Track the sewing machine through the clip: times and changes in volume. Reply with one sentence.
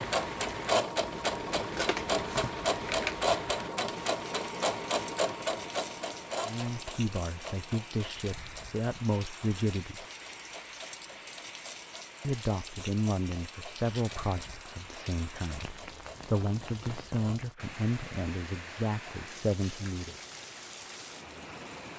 The sewing machine can be heard from 0.0 to 17.6 s, getting quieter.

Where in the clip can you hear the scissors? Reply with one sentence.
You can hear the scissors from 1.4 to 3.1 s.